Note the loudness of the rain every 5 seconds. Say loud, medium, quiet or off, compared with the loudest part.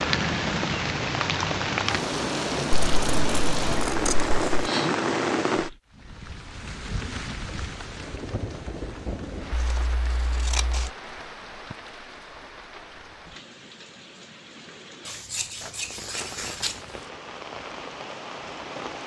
loud, medium, quiet, quiet.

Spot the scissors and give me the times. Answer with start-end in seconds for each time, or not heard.
3.0-4.7, 9.5-10.9, 15.1-16.8.